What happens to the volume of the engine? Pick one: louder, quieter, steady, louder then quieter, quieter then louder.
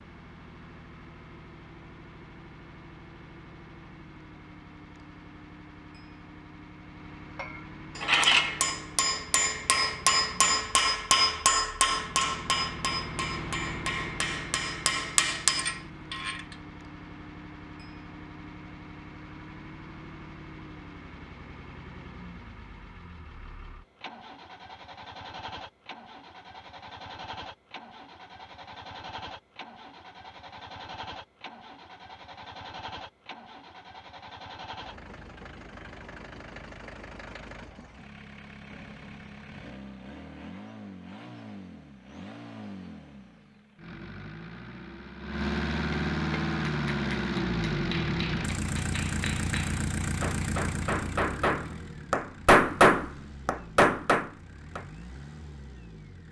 louder.